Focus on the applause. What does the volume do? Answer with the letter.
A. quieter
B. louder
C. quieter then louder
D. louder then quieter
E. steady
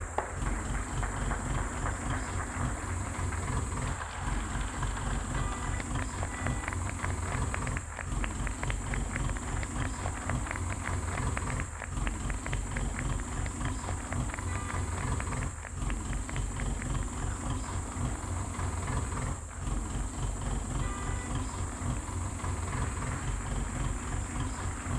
A.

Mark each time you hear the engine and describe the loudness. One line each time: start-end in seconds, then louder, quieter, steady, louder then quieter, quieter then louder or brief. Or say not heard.
0.0-24.9 steady.